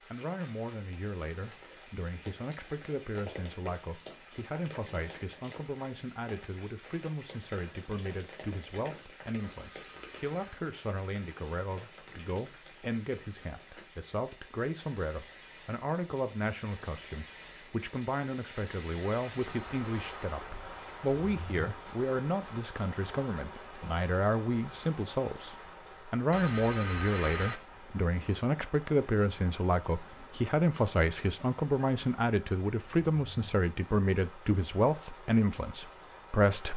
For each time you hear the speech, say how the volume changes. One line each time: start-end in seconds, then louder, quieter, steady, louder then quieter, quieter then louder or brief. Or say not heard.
0.1-36.7 louder.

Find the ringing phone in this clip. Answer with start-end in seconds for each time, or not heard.
9.3-10.6, 19.1-20.2, 26.3-27.6.